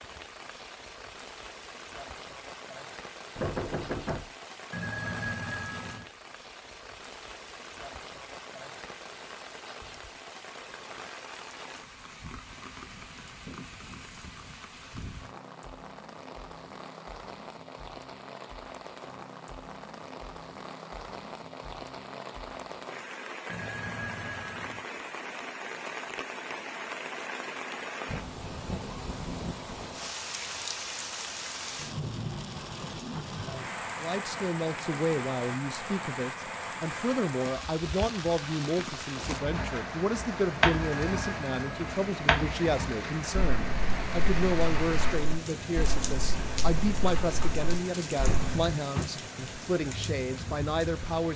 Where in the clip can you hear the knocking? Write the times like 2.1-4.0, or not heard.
3.4-4.3, 48.2-49.1.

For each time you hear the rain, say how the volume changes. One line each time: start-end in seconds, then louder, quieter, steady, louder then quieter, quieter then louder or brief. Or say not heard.
0.0-51.3 louder.